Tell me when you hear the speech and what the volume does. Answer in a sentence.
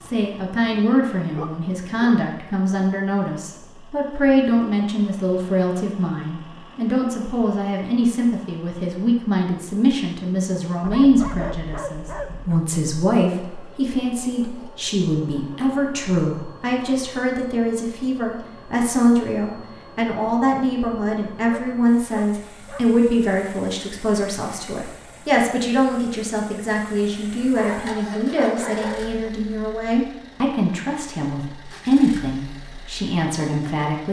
The speech can be heard from 0.0 to 34.0 s, at a steady volume.